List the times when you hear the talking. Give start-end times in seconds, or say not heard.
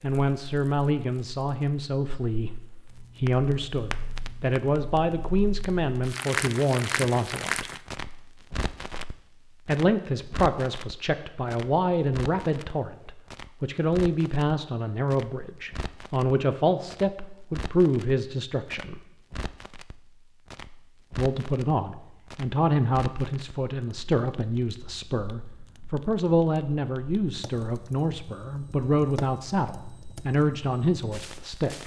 0.0-7.7, 9.7-19.0, 21.1-31.8.